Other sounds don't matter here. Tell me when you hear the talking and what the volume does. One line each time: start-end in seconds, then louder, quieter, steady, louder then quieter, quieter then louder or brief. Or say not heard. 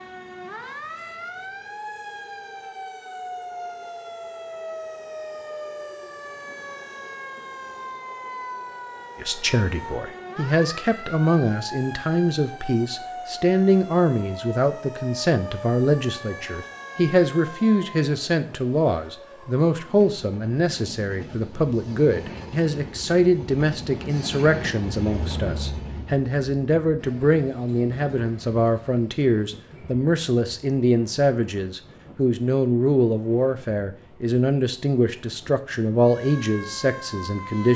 9.2-37.7 steady.